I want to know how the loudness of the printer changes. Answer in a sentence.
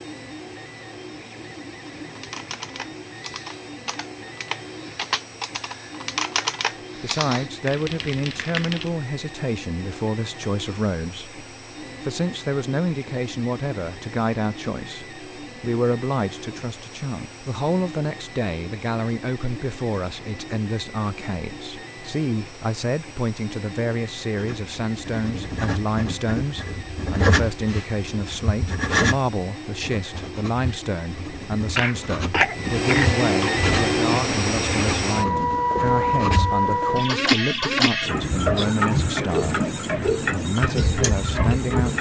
The volume of the printer goes up.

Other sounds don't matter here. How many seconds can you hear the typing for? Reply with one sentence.
You can hear the typing for 7 seconds altogether.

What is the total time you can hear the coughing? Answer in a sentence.
You can hear the coughing for 2 seconds altogether.